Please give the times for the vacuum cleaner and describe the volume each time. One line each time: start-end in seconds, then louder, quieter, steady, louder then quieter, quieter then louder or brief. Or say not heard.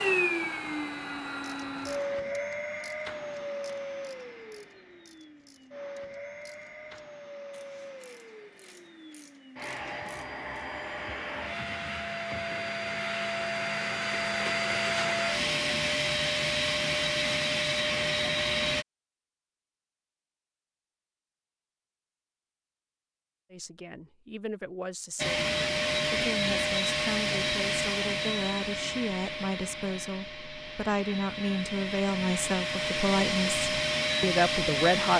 0.0-18.9 quieter then louder
25.1-35.1 quieter then louder.